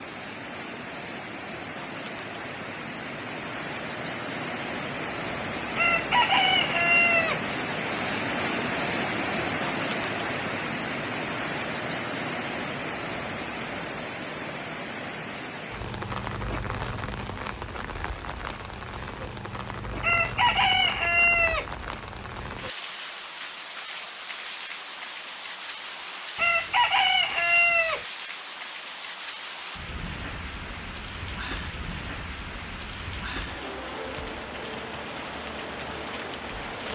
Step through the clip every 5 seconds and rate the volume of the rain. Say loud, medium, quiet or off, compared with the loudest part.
medium, loud, loud, medium, medium, medium, medium, medium.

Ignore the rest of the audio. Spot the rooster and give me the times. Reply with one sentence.
You can hear the rooster from 5.8 to 7.4 s, from 20.0 to 21.6 s and from 26.4 to 28.1 s.